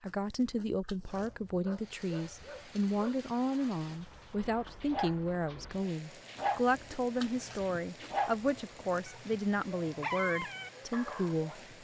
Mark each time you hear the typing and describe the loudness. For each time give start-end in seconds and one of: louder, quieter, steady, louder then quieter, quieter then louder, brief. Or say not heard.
not heard.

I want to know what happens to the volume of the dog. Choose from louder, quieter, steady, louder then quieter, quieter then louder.
louder.